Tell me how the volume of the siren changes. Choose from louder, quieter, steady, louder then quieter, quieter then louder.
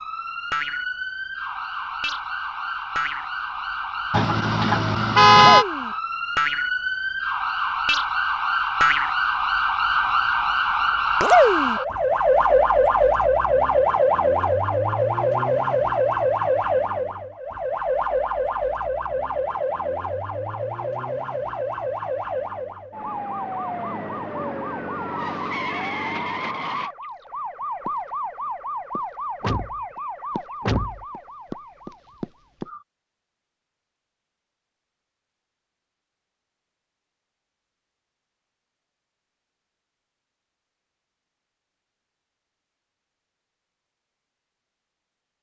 louder then quieter.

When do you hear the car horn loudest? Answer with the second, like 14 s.
5 s.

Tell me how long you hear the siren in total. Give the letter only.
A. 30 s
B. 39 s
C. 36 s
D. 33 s
D.